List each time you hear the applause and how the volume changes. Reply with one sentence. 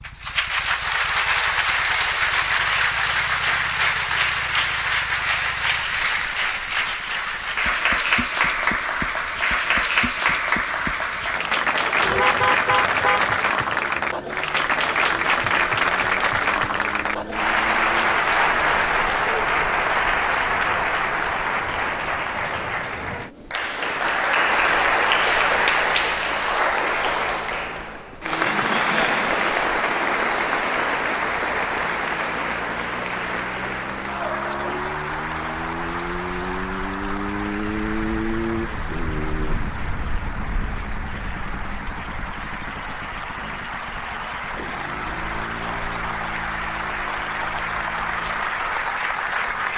The applause can be heard from 0.0 to 49.7 s, getting quieter.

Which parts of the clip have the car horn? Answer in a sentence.
You can hear the car horn from 12.0 to 13.3 s.